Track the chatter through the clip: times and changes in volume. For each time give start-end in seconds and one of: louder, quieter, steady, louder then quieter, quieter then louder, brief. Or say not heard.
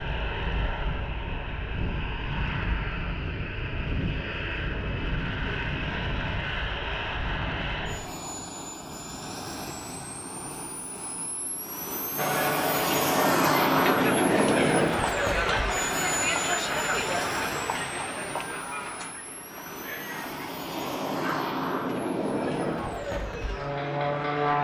12.2-24.5 quieter.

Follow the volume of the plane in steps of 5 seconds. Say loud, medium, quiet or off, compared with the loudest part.
medium, medium, loud, medium, loud.